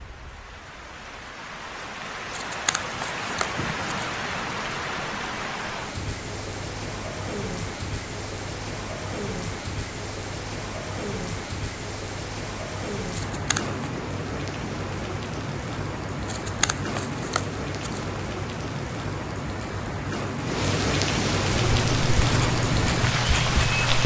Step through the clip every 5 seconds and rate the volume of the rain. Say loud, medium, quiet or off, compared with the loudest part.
medium, medium, medium, medium, loud.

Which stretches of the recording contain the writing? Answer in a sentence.
You can hear the writing from 21.5 to 24.0 s.